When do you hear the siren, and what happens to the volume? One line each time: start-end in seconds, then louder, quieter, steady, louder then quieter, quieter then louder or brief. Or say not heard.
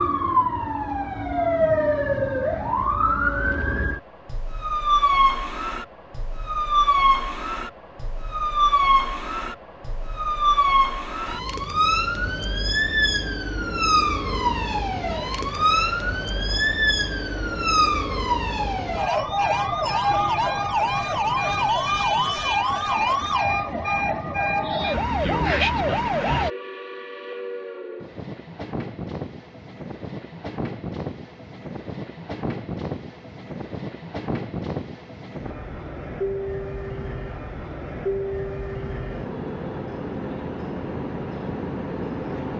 0.0-26.5 steady.